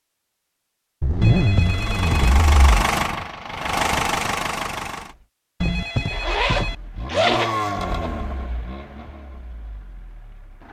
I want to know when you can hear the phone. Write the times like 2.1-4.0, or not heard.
1.2-2.4, 5.6-6.8.